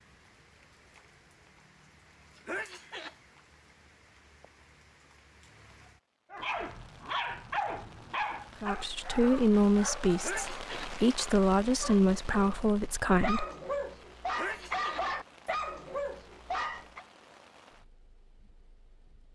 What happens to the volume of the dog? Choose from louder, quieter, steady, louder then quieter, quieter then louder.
quieter then louder.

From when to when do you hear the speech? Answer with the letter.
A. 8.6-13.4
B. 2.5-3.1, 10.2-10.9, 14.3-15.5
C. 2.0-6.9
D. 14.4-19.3
A.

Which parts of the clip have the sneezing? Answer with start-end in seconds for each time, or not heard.
2.5-3.1, 10.2-10.9, 14.3-15.5.